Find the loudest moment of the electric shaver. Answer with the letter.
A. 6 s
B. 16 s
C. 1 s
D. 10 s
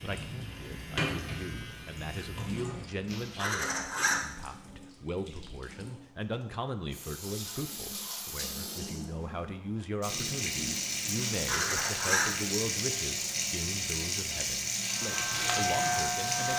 B.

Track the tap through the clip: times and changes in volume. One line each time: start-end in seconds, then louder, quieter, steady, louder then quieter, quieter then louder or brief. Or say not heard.
0.0-16.5 quieter then louder.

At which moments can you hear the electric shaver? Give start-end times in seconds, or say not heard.
0.0-2.6, 14.8-16.5.